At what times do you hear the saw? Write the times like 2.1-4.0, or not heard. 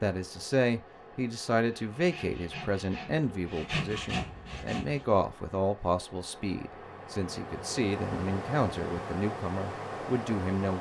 1.8-5.2.